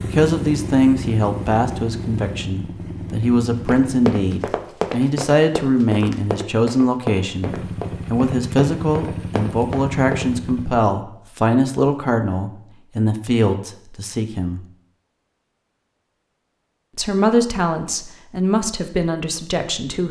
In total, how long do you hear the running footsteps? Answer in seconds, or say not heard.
7 s.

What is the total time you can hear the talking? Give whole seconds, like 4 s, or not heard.
18 s.